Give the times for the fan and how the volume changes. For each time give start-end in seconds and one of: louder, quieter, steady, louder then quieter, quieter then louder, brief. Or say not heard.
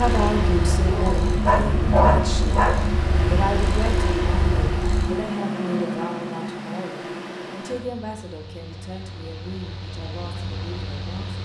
0.0-11.4 quieter.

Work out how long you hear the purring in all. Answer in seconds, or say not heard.
5 s.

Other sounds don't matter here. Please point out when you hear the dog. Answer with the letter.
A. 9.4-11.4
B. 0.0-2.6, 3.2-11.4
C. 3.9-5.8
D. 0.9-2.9
D.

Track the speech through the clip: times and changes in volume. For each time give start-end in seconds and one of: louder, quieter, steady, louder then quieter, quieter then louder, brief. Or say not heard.
0.0-2.6 brief
3.2-11.4 quieter.